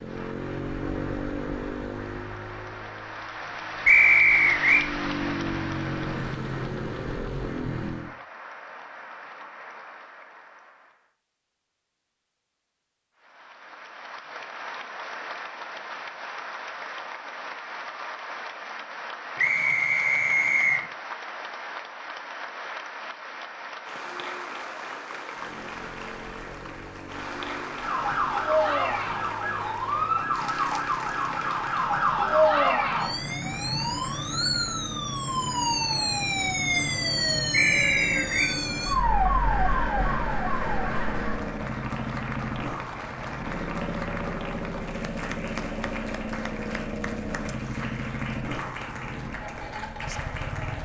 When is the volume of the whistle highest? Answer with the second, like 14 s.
4 s.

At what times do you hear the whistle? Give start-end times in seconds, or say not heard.
3.9-4.8, 19.4-20.8, 37.5-38.5.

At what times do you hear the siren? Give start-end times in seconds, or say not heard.
27.8-41.4.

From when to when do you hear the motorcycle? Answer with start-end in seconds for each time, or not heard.
0.0-8.2, 25.3-50.8.